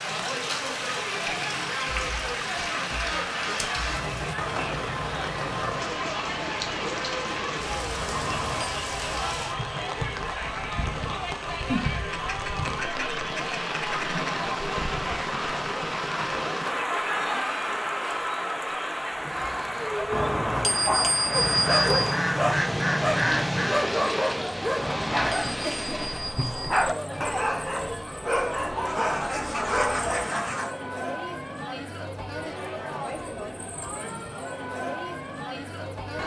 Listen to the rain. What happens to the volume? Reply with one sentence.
The loudness of the rain stays about the same.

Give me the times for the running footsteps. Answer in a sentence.
You can't hear the running footsteps here.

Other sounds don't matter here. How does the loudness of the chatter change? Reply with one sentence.
The loudness of the chatter stays about the same.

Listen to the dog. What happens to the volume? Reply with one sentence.
The loudness of the dog stays about the same.